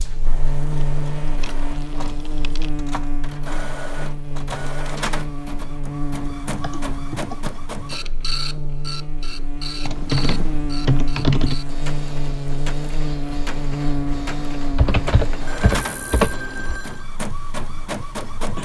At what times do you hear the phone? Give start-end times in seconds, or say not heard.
15.4-17.1.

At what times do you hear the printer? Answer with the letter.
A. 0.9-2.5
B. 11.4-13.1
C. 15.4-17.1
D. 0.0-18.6
D.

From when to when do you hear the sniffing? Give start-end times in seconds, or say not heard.
not heard.